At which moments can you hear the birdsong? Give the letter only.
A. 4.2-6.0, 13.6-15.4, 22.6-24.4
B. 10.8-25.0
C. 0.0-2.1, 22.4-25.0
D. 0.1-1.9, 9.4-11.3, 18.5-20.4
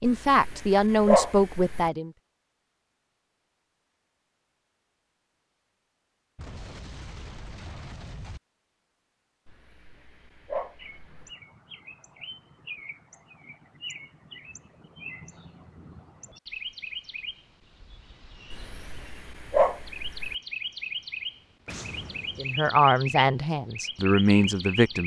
B.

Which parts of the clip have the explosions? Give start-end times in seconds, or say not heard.
6.3-8.4, 21.6-22.8.